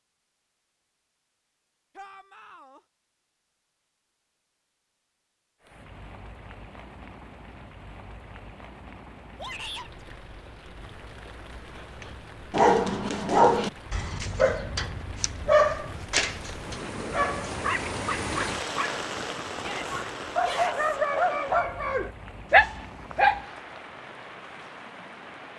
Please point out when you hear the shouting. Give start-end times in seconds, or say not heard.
1.9-2.8, 9.3-10.1, 19.6-21.0.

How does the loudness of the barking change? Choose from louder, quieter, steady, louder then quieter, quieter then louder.
quieter then louder.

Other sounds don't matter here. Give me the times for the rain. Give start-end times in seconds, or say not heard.
5.6-25.5.